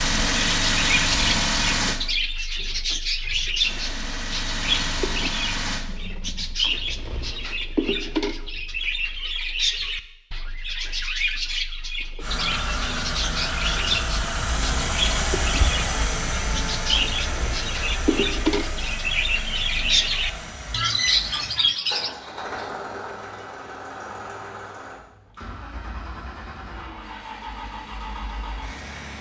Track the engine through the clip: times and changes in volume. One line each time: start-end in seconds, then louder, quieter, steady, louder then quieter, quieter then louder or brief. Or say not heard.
0.0-2.0 brief
3.6-5.8 brief
12.2-29.1 quieter.